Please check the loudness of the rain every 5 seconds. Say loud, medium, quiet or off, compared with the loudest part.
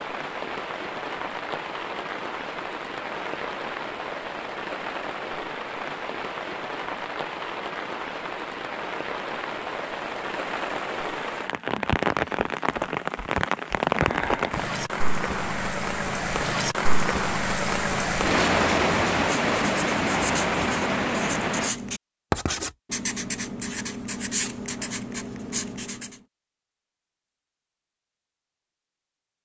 medium, medium, loud, loud, loud, off.